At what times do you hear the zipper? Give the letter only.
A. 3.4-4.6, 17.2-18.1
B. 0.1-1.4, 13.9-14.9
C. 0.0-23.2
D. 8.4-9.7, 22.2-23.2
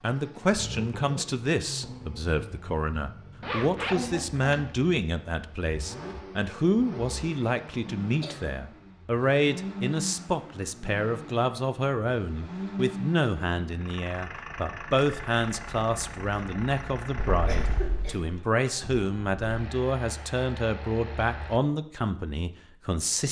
A.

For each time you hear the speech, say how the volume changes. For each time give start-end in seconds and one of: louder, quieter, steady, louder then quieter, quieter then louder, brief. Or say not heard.
0.0-23.2 steady.